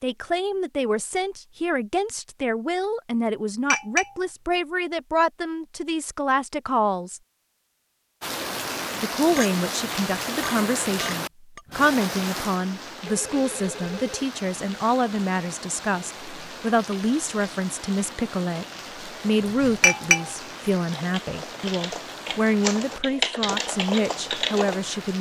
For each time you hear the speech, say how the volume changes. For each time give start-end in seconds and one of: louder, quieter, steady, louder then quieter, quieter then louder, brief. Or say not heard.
0.0-7.2 steady
9.0-25.1 steady.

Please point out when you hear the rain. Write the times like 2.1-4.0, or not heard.
8.2-25.1.